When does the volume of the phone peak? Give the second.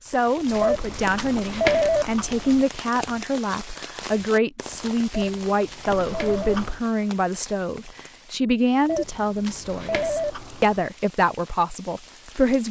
2 s.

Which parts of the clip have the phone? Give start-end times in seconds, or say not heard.
0.6-2.0, 5.1-6.6, 8.8-10.3.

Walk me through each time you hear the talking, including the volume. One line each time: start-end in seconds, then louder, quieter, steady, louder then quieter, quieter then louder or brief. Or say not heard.
0.0-12.6 steady.